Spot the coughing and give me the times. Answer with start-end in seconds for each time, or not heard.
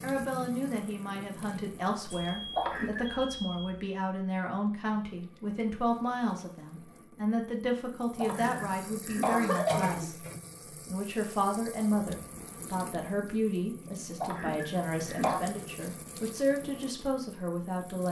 2.5-3.0, 8.2-10.1, 14.2-15.4.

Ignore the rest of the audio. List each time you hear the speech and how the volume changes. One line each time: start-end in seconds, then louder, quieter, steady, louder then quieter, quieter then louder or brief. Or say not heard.
0.0-18.0 steady.